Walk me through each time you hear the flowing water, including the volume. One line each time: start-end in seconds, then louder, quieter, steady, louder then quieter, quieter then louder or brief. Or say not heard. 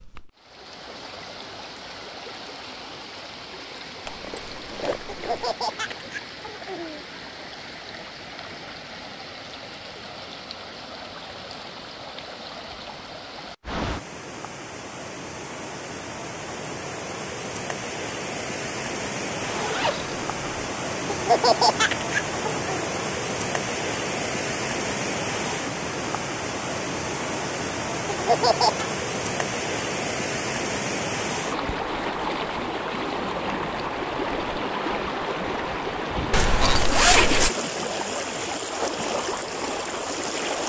0.0-40.6 louder.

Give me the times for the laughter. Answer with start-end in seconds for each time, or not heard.
5.1-7.0, 21.1-22.9, 28.1-28.9.